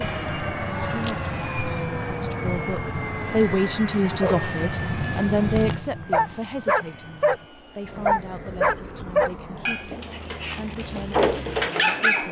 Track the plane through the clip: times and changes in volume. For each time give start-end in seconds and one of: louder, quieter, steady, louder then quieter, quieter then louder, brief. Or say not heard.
0.0-12.2 quieter.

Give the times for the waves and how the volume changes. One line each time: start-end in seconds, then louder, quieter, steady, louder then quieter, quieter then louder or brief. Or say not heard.
not heard.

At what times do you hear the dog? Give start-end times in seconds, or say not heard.
0.0-1.9, 4.0-7.4, 8.1-12.2.